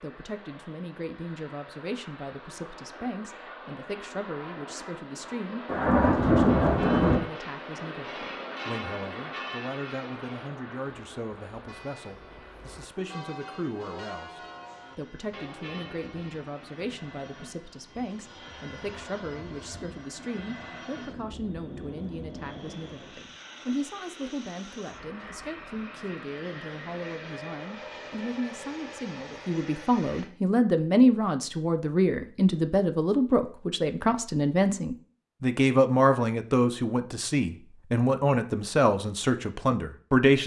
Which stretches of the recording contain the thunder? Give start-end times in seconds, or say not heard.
5.7-7.2.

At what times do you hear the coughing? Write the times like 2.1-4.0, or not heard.
not heard.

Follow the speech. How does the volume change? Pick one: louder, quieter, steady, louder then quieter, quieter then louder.
louder.